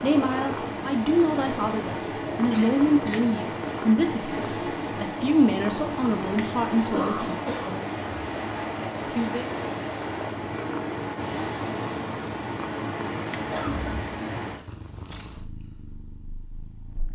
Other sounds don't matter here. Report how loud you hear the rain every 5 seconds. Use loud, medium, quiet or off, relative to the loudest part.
loud, loud, loud, off.